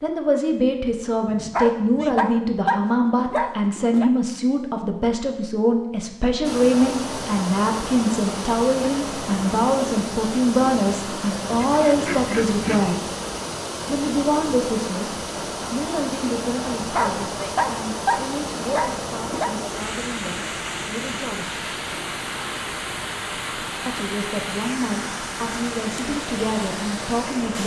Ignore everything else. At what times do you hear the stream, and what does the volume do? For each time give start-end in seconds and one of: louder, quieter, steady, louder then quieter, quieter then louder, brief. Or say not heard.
6.4-27.6 steady.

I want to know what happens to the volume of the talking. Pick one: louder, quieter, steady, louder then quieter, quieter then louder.
quieter.